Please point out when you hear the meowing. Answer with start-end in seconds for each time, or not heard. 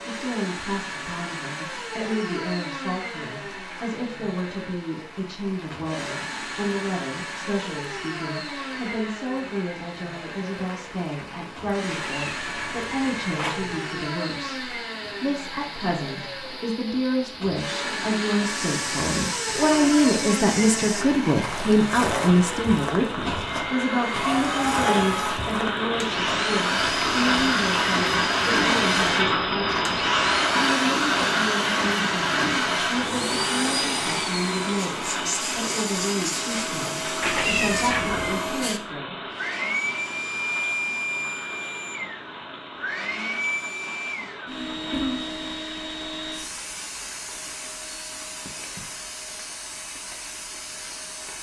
11.8-13.8, 37.2-38.5.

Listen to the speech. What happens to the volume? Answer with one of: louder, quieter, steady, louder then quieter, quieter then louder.
louder then quieter.